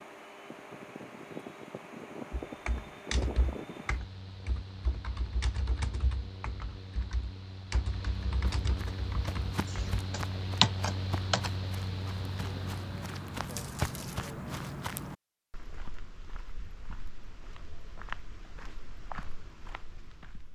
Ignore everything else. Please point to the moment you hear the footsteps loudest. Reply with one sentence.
The loudest moment of the footsteps is at 14 seconds.